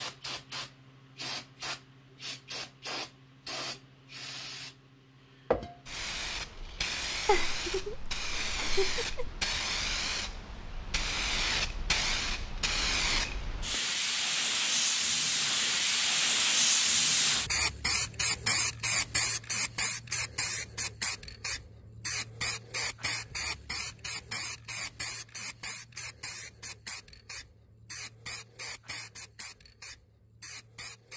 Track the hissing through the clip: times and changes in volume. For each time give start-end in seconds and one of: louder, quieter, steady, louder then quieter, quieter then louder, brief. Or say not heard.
0.0-31.1 louder then quieter.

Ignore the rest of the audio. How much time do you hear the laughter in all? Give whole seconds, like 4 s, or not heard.
2 s.